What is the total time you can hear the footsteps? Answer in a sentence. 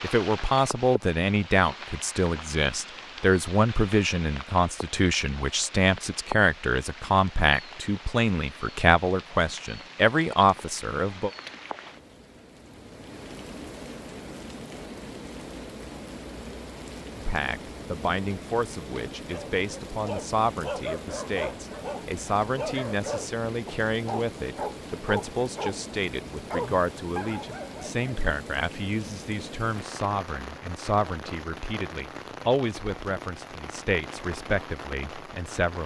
The footsteps can't be heard in this clip.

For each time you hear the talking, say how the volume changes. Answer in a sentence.
The talking can be heard from 0.0 to 11.3 s, at a steady volume; and from 17.1 to 35.8 s, at a steady volume.